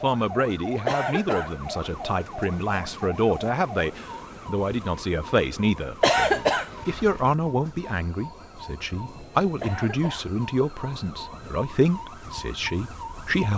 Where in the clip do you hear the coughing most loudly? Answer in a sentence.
The loudest moment of the coughing is at 6 seconds.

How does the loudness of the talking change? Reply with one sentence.
The volume of the talking stays about the same.